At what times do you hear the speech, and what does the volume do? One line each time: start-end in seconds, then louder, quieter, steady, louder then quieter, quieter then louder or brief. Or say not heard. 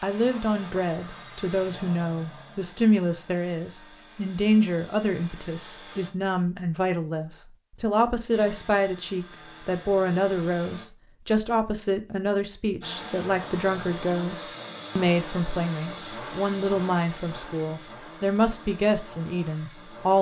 0.0-20.1 steady.